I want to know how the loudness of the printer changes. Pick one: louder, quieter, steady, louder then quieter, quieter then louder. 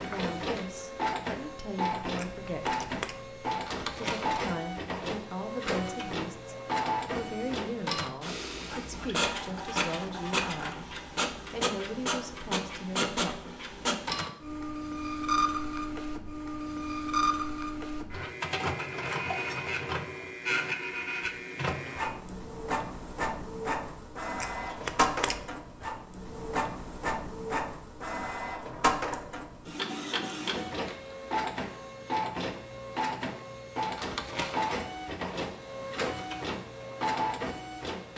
steady.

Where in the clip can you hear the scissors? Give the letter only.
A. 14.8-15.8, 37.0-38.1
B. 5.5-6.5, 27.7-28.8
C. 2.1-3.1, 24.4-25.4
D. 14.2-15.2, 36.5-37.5
C.